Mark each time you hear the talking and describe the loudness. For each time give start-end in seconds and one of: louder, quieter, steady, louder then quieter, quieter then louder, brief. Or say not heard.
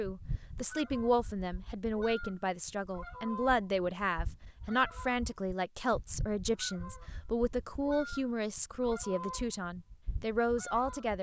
0.0-11.1 steady.